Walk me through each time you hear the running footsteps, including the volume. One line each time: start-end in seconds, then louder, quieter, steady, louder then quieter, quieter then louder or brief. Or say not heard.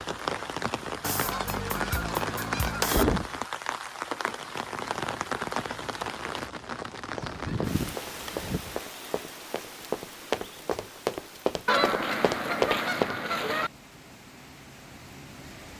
6.6-13.4 louder.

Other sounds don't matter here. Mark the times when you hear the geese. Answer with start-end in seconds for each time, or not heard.
1.0-3.0, 7.2-8.8, 11.7-13.7.